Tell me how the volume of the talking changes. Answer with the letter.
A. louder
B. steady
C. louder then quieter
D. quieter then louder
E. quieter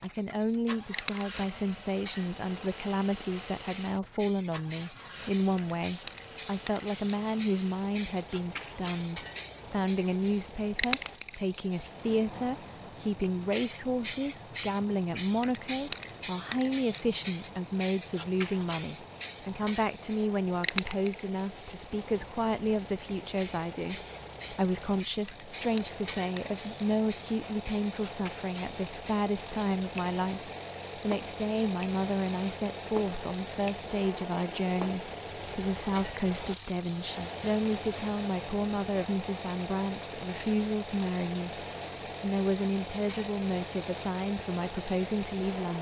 B.